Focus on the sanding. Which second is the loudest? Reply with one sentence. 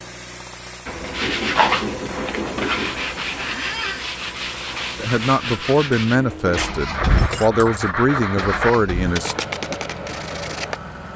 The loudest moment of the sanding is at 2 seconds.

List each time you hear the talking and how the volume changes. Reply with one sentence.
The talking can be heard from 5.0 to 9.3 s, at a steady volume.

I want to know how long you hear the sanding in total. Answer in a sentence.
The sanding can be heard for 10 seconds in total.